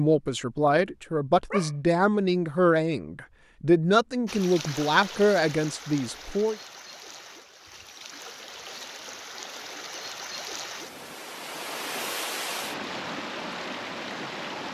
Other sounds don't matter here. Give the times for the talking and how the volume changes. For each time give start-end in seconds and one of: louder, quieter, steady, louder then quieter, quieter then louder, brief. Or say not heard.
0.0-6.5 steady.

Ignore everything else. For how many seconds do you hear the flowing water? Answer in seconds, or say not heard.
10 s.